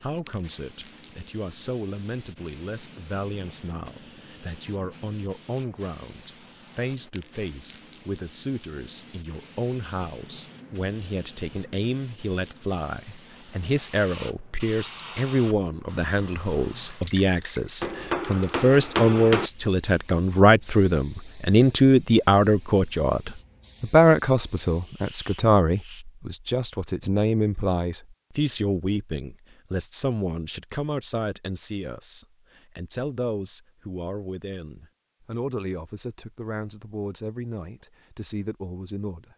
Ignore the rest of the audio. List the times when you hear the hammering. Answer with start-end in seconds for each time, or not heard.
17.8-19.5.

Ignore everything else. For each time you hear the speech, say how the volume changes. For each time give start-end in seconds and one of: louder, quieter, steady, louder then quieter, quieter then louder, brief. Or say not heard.
0.0-39.3 louder then quieter.